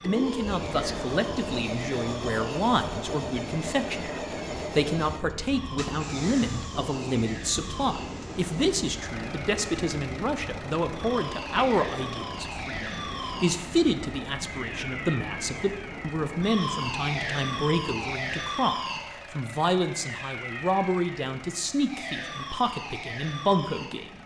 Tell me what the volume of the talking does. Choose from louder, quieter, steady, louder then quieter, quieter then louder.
steady.